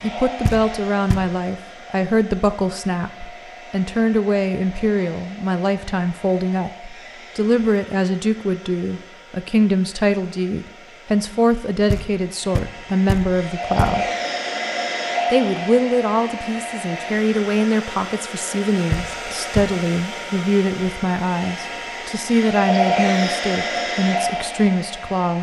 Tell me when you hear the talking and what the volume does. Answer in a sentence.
You can hear the talking from 0.0 to 14.1 s, at a steady volume; and from 15.3 to 25.3 s, at a steady volume.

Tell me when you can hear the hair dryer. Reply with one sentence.
The hair dryer can be heard from 0.0 to 25.3 s.